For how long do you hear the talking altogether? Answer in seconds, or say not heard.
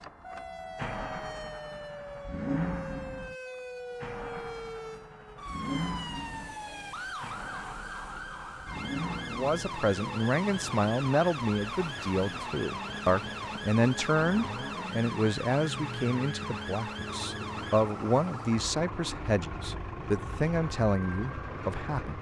13 s.